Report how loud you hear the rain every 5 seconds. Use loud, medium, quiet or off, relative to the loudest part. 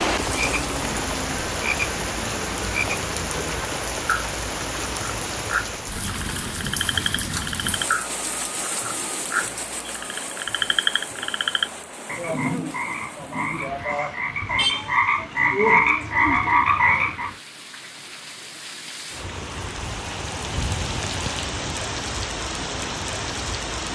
loud, loud, medium, medium, loud.